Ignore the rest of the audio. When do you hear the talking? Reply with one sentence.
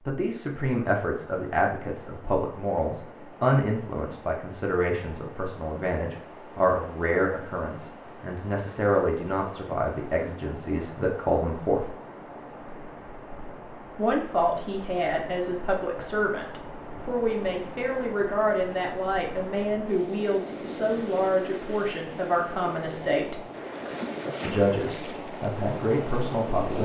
You can hear the talking from 0.1 to 11.9 s, from 13.9 to 23.4 s and from 24.4 to 26.8 s.